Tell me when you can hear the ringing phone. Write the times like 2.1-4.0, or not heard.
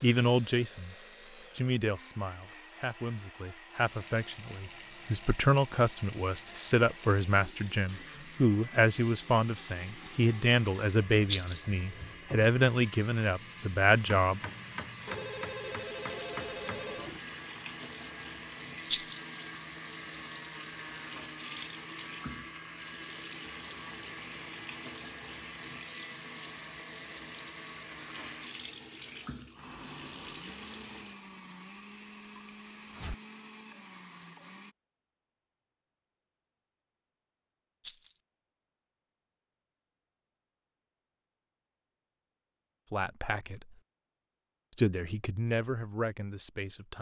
15.1-17.1, 31.6-33.1.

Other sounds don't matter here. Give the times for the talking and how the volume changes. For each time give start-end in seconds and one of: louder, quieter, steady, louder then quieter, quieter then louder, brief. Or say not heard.
0.0-0.9 brief
1.6-14.5 louder
42.9-43.8 brief
44.8-46.9 brief.